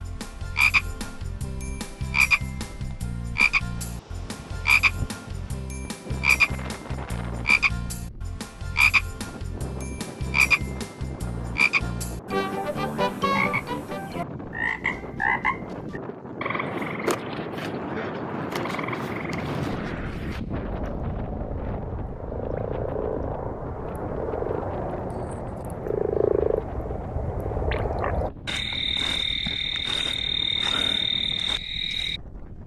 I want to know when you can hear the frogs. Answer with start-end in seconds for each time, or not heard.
0.0-32.2.